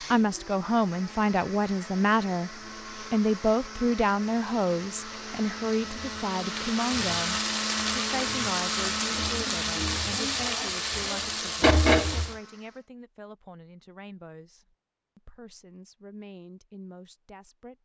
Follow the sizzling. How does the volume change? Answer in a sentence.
The loudness of the sizzling goes up.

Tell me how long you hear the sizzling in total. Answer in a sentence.
The sizzling can be heard for 8 seconds in total.